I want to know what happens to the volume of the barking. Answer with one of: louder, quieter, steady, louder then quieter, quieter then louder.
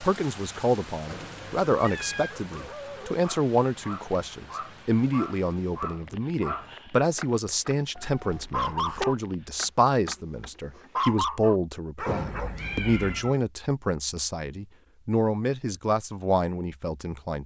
louder.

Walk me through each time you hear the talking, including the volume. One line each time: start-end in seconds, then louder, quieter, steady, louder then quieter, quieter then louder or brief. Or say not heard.
0.0-17.4 steady.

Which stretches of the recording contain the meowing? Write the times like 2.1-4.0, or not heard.
1.1-2.6, 8.0-9.2, 12.1-13.4.